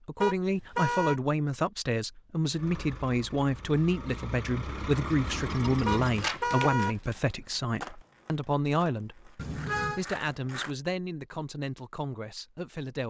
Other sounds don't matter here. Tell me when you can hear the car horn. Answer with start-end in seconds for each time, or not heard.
0.2-1.2, 5.8-7.0, 9.3-10.0.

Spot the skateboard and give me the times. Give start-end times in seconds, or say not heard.
6.2-10.8.